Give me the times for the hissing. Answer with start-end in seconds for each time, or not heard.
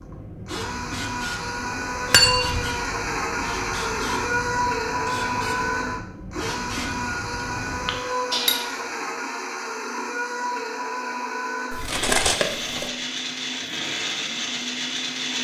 0.0-8.7.